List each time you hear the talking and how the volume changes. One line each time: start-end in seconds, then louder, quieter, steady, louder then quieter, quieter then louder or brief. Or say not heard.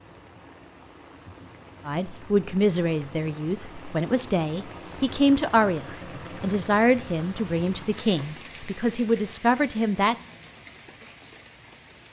1.9-10.2 steady.